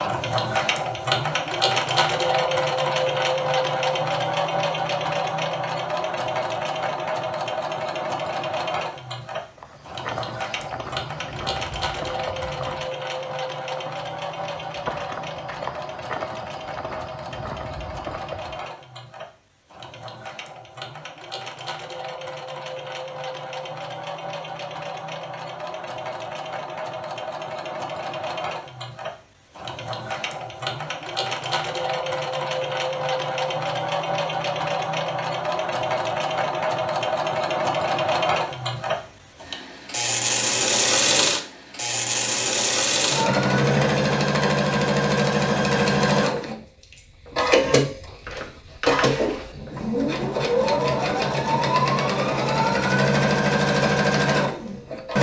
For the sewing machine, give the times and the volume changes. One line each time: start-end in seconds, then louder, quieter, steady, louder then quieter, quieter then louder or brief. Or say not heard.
0.0-55.1 quieter then louder.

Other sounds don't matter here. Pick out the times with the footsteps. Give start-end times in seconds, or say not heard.
9.6-18.7.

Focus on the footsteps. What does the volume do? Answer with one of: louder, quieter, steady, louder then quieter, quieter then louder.
steady.